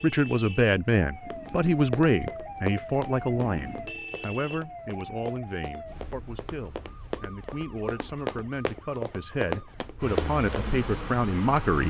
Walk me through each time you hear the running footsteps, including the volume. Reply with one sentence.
The running footsteps can be heard from 1.3 to 10.7 s, getting quieter then louder.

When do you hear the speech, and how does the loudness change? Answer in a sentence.
You can hear the speech from 0.0 to 11.8 s, getting quieter then louder.